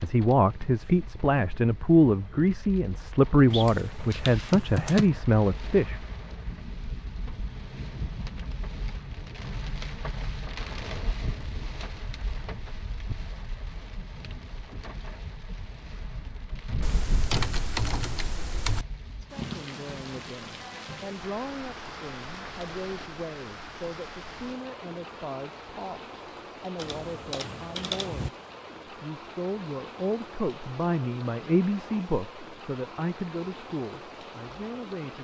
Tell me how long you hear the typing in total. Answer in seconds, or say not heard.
5 s.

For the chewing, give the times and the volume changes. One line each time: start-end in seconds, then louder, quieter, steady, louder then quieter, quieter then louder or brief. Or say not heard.
not heard.